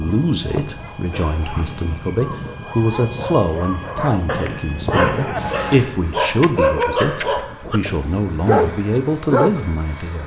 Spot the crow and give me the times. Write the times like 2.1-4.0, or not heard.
not heard.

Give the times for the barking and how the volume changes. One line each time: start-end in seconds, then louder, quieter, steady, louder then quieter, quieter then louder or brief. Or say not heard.
0.1-9.7 louder.